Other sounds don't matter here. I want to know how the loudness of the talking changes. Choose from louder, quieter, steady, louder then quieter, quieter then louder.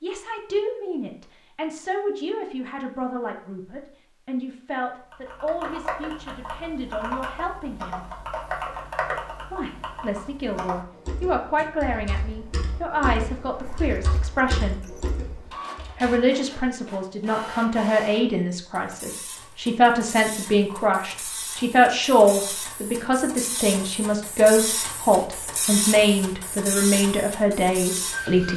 louder.